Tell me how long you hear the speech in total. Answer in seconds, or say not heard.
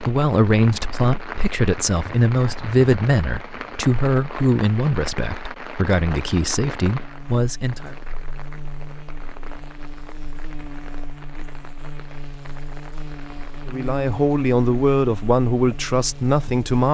11 s.